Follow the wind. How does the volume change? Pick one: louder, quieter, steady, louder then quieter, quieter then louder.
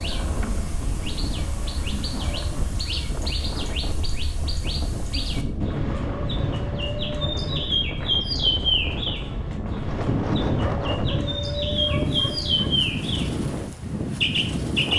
louder.